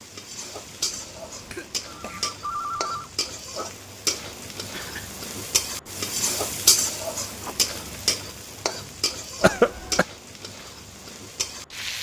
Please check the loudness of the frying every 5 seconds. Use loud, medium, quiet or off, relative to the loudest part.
medium, loud, medium.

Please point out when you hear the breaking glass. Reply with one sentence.
You can't hear the breaking glass here.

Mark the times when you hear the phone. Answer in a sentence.
The phone can be heard from 1.9 to 3.1 s and from 7.2 to 8.0 s.